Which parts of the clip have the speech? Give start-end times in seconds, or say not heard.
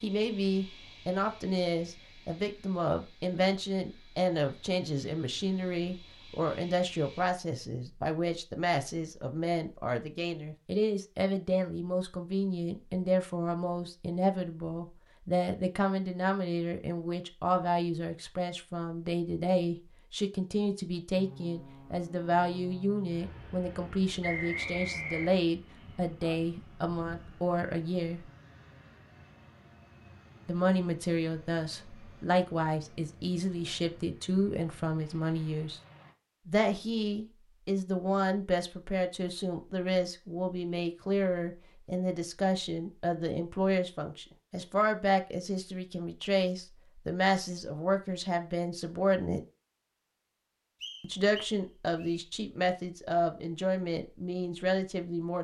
0.0-28.2, 30.4-35.8, 36.5-49.4, 51.0-55.4.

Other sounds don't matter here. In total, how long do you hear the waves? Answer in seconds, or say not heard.
not heard.